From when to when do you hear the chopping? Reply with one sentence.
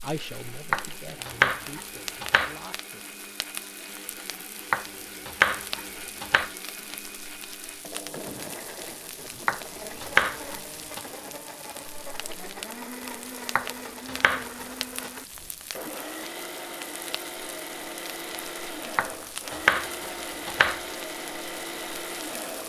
You can hear the chopping from 0.7 to 2.5 s, from 4.7 to 6.5 s, from 9.4 to 11.0 s, from 13.6 to 15.1 s and from 18.9 to 20.8 s.